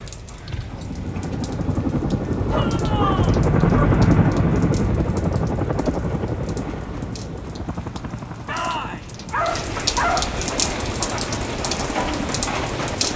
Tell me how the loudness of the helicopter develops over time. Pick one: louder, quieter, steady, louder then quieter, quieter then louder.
louder then quieter.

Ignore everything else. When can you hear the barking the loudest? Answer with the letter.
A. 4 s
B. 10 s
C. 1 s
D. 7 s
B.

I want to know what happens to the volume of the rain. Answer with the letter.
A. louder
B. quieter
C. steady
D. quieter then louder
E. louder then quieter
A.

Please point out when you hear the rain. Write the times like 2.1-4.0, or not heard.
0.0-13.1.